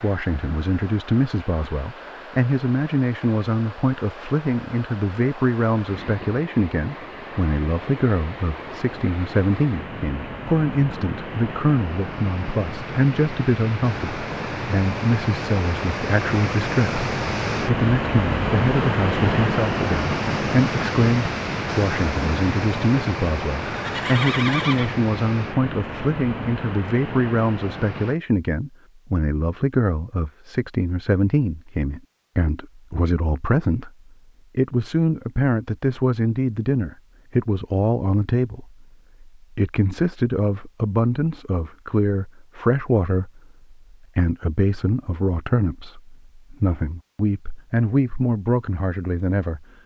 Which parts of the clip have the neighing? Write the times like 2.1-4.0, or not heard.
23.6-24.9.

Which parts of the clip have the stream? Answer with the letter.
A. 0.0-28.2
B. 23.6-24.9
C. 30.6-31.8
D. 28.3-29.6
A.